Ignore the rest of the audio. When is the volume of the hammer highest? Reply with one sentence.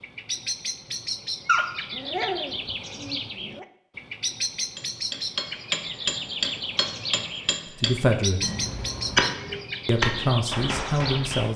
The loudest moment of the hammer is at 9 seconds.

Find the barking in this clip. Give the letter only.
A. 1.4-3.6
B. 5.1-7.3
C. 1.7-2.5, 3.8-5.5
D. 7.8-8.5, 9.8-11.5
A.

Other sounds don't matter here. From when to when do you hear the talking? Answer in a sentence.
You can hear the talking from 7.8 to 8.5 s and from 9.8 to 11.5 s.